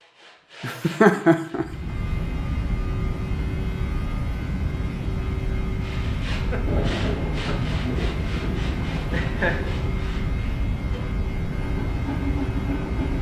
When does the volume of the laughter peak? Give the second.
1 s.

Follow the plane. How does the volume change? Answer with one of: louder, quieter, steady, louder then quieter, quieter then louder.
steady.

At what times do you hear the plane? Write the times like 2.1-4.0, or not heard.
1.6-13.1.